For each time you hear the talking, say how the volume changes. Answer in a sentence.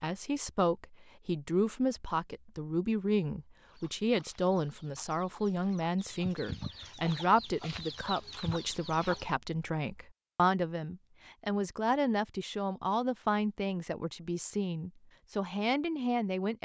You can hear the talking from 0.0 to 16.5 s, at a steady volume.